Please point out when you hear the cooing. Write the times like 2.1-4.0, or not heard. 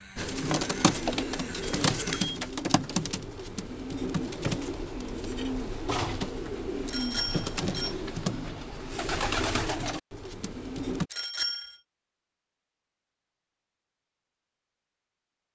0.1-11.1.